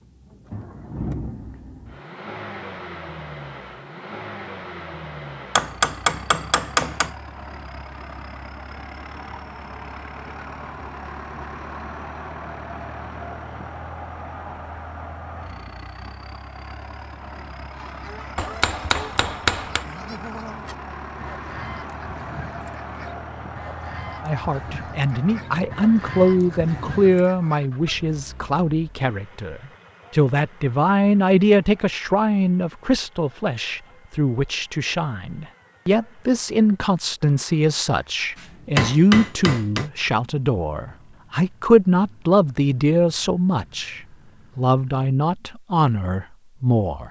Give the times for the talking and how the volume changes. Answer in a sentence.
You can hear the talking from 24.2 to 47.0 s, at a steady volume.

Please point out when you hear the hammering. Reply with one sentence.
You can hear the hammering from 5.5 to 7.1 s, from 18.4 to 19.9 s and from 38.4 to 39.9 s.